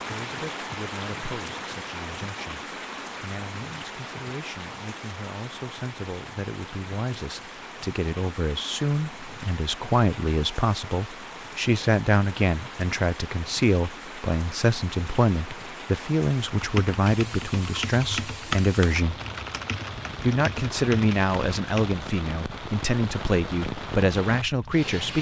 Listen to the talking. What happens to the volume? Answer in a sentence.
The volume of the talking goes up.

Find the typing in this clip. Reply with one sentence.
The typing can be heard from 16.6 to 22.1 s.